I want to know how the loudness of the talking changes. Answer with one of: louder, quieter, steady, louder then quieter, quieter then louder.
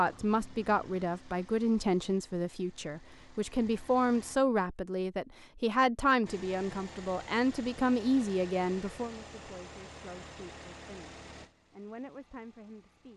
quieter.